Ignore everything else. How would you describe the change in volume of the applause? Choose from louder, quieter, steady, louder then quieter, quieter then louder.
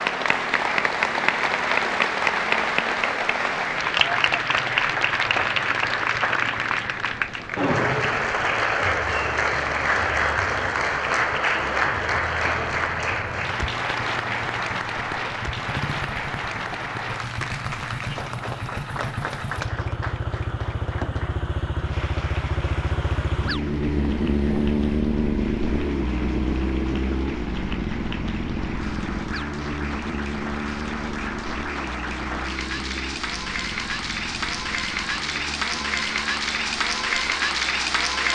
quieter then louder.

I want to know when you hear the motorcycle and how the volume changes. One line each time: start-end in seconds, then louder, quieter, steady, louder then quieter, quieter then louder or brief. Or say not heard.
0.0-38.3 louder then quieter.